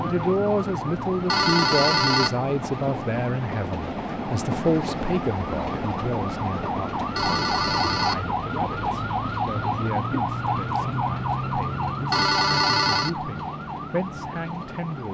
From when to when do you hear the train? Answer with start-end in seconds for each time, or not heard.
0.0-15.0.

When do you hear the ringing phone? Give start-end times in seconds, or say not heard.
1.2-2.4, 7.2-8.2, 12.1-13.2.